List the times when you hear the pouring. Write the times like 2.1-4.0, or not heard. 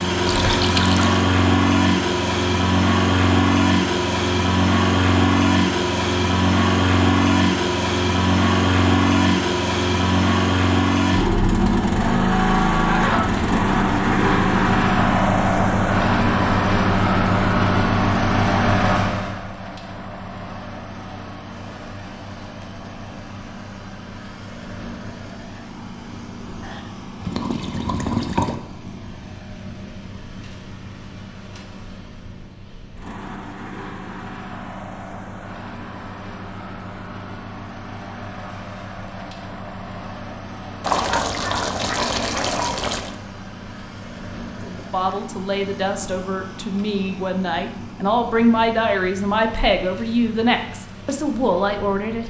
0.2-1.2, 26.6-28.6, 40.8-43.1.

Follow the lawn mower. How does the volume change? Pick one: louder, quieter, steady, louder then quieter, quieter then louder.
quieter.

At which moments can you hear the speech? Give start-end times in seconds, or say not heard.
44.6-52.2.